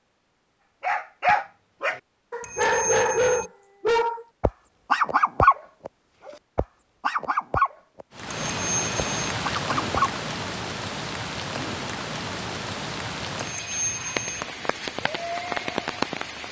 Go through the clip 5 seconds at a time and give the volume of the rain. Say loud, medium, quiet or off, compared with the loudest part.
off, loud, loud, loud.